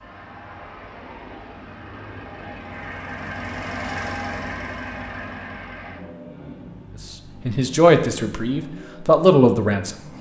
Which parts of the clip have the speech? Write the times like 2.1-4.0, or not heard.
7.5-9.9.